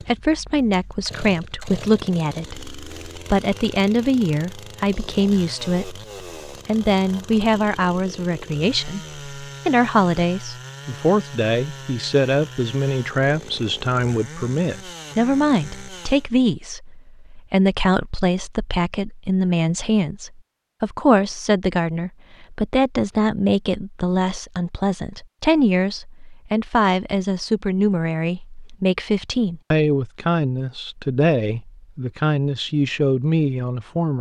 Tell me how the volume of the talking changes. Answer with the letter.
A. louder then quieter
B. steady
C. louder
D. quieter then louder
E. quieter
B.